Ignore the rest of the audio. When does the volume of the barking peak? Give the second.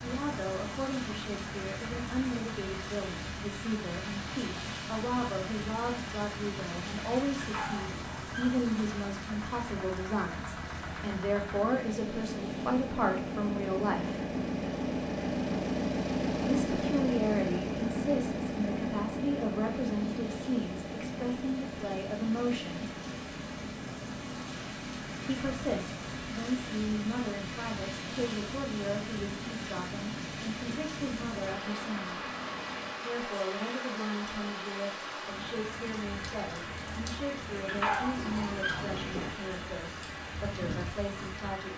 38 s.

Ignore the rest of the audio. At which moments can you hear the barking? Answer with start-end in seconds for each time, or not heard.
7.4-8.9, 37.6-39.4.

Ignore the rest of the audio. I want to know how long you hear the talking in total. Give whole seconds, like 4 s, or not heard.
36 s.